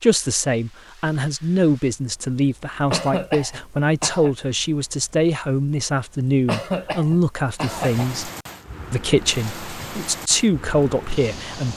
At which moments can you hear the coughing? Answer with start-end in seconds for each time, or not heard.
2.9-4.3, 6.5-8.2.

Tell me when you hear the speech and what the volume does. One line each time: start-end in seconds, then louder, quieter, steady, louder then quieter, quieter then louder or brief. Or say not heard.
0.0-8.3 steady
8.9-11.7 brief.